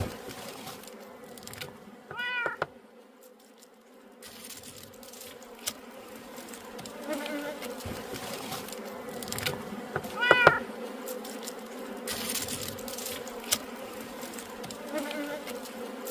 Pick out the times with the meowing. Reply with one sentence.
You can hear the meowing from 2.1 to 2.6 s and from 10.2 to 10.7 s.